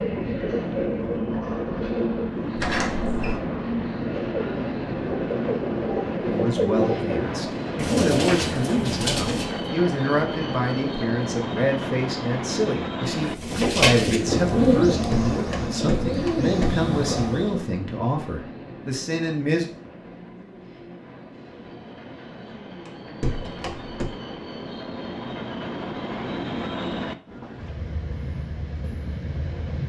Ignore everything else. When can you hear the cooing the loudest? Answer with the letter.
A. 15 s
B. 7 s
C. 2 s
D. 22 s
A.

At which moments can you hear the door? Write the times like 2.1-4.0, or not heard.
2.5-3.4, 15.1-16.8, 22.9-24.1.